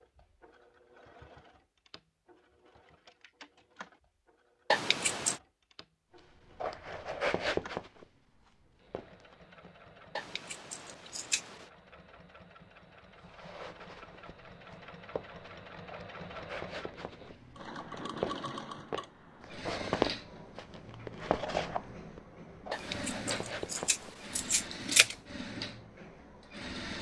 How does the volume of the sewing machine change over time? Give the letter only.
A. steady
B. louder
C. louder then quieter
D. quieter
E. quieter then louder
B.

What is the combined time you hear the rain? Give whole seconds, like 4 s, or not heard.
not heard.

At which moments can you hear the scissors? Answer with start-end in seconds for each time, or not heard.
4.7-5.4, 10.2-11.7, 22.7-25.1.